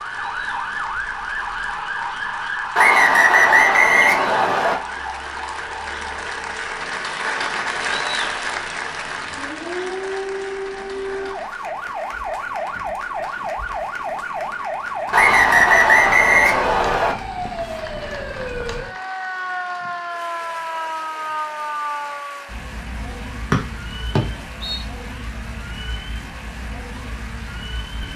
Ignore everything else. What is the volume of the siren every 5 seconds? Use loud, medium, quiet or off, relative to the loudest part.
loud, medium, loud, loud, loud, medium.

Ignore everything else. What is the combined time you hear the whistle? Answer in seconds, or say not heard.
5 s.